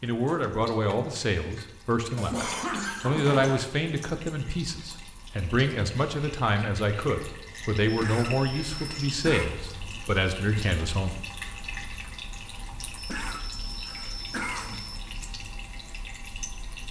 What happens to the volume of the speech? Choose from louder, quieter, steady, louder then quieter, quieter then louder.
steady.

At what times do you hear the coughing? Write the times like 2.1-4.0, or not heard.
2.1-3.6, 7.8-9.5, 12.9-15.0.